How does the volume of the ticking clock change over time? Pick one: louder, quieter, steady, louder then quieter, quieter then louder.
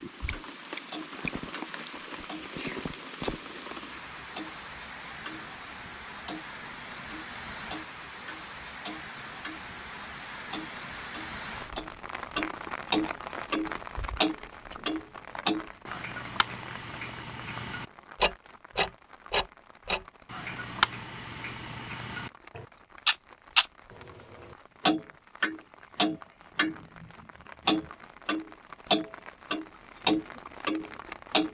louder.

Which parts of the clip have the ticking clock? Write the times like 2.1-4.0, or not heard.
0.3-5.5, 6.2-9.7, 10.5-27.1, 27.6-31.5.